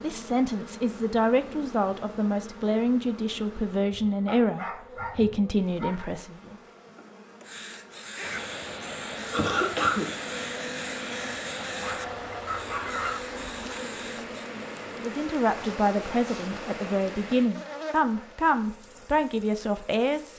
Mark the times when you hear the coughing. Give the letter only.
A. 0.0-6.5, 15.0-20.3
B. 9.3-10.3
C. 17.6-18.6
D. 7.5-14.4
B.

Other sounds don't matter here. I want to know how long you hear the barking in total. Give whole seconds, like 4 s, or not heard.
3 s.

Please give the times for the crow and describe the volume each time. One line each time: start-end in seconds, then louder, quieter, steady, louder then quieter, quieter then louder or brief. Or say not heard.
7.5-14.4 steady.